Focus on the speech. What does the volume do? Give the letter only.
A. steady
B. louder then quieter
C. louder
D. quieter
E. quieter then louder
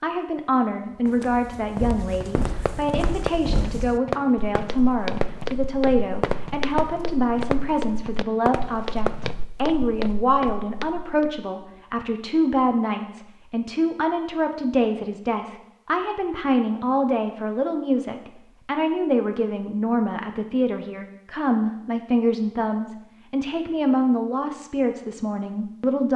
A.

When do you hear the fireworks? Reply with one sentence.
You can hear the fireworks from 2.1 to 9.4 s.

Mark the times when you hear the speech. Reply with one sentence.
You can hear the speech from 0.0 to 26.1 s.